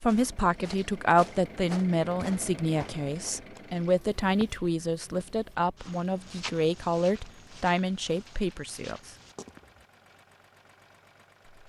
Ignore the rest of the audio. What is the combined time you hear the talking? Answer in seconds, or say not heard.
9 s.